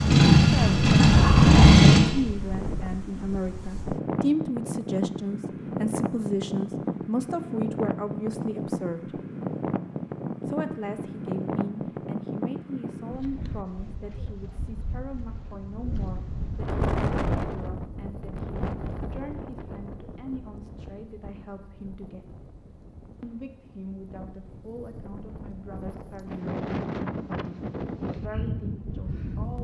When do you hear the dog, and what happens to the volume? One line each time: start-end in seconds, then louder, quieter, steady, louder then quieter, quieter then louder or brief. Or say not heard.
not heard.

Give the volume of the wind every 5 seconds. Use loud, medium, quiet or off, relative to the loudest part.
loud, loud, loud, loud, quiet, loud.